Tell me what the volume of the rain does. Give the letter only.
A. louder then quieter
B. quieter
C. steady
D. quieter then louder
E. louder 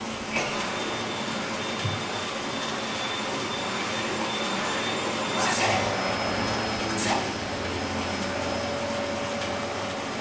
C.